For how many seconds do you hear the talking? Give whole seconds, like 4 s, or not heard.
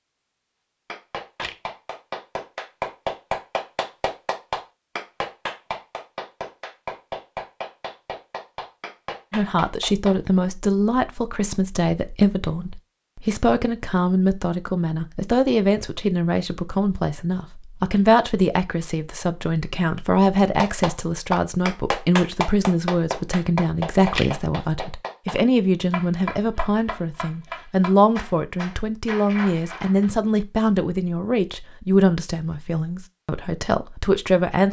25 s.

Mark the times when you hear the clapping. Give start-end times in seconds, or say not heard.
0.8-10.2, 20.6-30.1.